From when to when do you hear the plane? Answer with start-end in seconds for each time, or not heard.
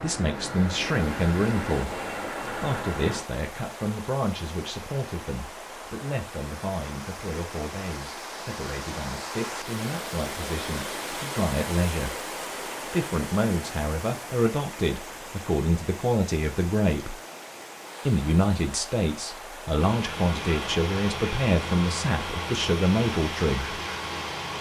0.0-3.2, 19.7-24.5.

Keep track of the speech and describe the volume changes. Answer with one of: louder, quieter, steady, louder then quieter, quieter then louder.
quieter then louder.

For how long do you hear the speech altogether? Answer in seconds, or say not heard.
22 s.